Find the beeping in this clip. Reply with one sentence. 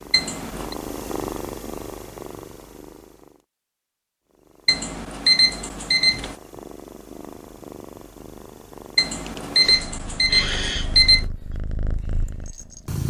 You can hear the beeping from 0.1 to 0.8 s, from 4.7 to 6.3 s and from 8.9 to 11.2 s.